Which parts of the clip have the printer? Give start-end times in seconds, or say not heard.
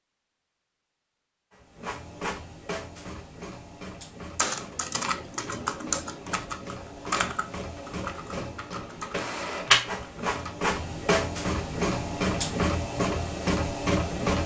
1.5-14.4.